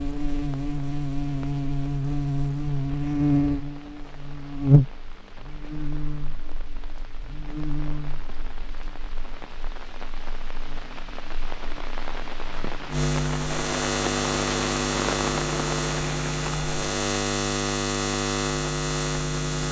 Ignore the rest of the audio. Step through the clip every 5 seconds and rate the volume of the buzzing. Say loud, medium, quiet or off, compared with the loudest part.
loud, quiet, loud, loud.